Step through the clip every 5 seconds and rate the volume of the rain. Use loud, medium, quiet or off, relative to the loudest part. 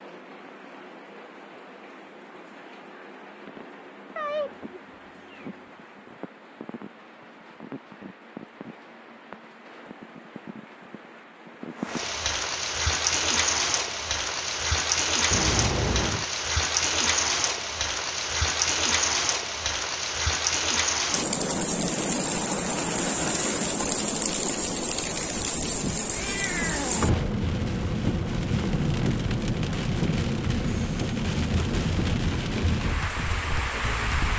quiet, quiet, loud, loud, loud, loud, loud.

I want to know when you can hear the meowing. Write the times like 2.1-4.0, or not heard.
4.2-5.5, 15.3-16.3, 26.1-27.2.